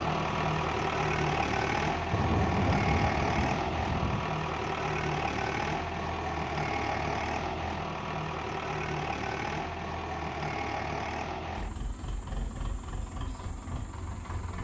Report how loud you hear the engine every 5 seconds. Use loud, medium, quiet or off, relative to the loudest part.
loud, loud, medium.